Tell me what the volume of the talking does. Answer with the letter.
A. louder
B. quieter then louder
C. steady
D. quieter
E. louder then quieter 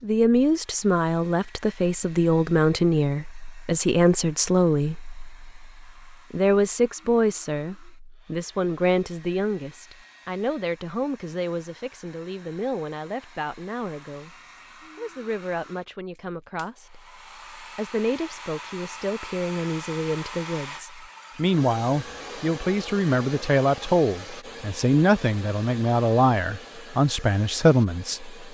B.